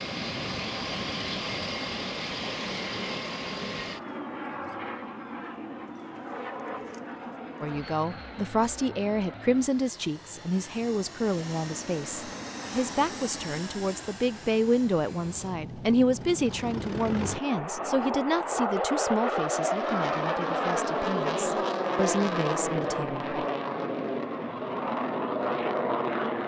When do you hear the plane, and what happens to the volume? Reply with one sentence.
The plane can be heard from 0.0 to 26.4 s, getting quieter then louder.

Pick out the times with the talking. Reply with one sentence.
The talking can be heard from 7.6 to 23.2 s.